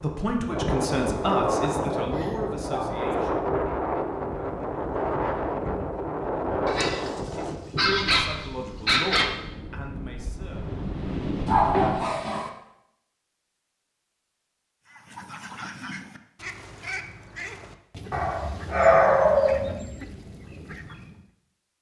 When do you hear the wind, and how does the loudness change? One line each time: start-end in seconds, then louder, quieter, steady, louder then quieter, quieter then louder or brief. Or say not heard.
0.0-11.9 quieter.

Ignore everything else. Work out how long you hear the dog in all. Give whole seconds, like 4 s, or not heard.
7 s.